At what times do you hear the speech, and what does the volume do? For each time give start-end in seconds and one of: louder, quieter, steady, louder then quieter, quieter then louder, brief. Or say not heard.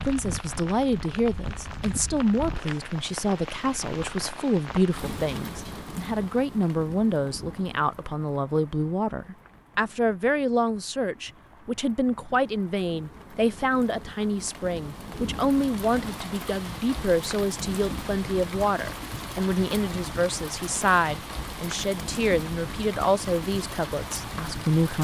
0.0-25.0 steady.